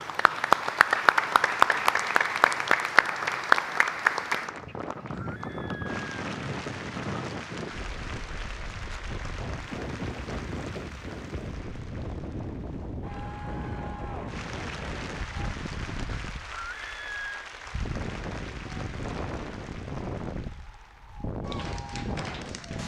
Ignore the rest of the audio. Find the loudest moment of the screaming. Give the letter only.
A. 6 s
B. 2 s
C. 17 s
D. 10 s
C.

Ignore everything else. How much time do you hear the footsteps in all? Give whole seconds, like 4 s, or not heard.
not heard.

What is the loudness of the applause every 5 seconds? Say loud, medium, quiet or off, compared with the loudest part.
loud, quiet, quiet, quiet, quiet.